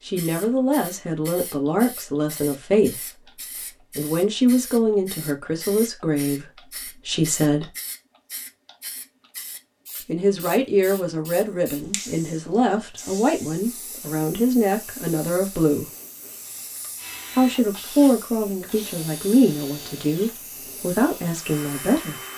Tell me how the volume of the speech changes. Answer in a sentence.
The volume of the speech stays about the same.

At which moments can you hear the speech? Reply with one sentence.
You can hear the speech from 0.1 to 7.7 s, from 10.0 to 15.9 s and from 17.3 to 22.1 s.